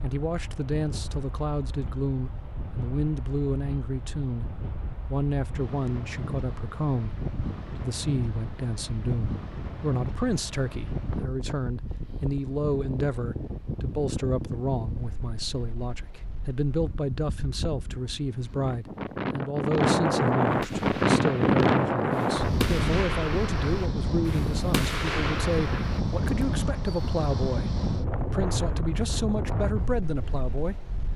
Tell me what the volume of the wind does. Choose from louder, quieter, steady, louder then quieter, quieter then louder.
louder then quieter.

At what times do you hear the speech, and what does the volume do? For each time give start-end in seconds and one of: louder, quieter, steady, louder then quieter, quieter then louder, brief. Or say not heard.
0.0-4.5 steady
5.0-30.8 steady.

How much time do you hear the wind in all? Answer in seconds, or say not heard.
31 s.